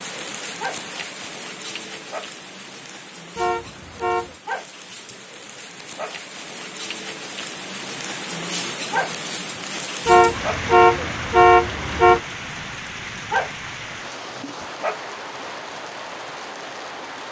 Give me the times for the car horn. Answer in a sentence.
The car horn can be heard from 3.4 to 4.3 s and from 10.1 to 12.2 s.